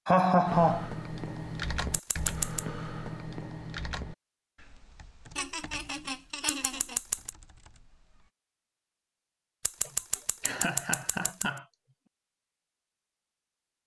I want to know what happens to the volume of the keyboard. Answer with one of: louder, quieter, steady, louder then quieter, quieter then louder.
quieter.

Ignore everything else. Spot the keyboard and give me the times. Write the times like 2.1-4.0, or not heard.
0.5-8.3.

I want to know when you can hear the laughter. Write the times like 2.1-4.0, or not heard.
0.1-0.9, 5.3-7.0, 9.8-11.7.